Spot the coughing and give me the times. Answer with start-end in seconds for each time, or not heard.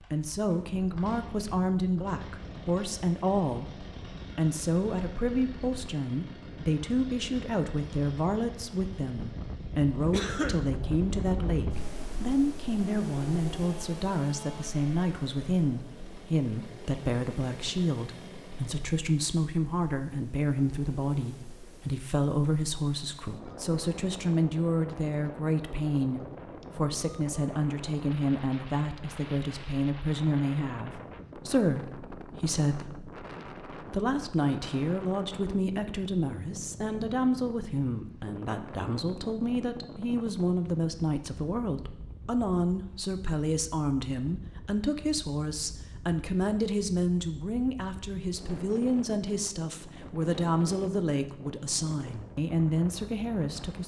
10.1-10.7.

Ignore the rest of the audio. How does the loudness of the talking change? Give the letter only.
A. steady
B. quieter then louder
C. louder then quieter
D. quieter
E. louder
A.